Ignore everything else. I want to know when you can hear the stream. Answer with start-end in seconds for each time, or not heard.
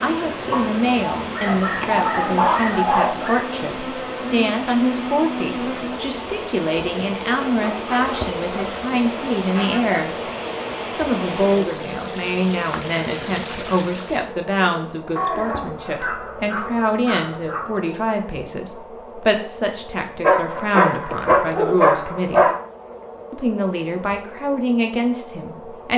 0.0-14.3.